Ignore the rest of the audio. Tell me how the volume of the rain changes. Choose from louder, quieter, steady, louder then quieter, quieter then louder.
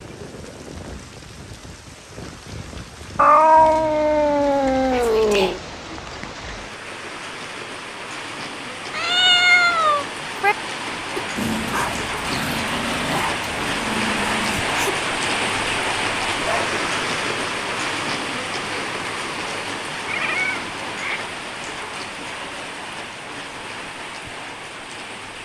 louder then quieter.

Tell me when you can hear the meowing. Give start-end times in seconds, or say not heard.
3.1-5.6, 8.9-10.6, 20.1-21.4.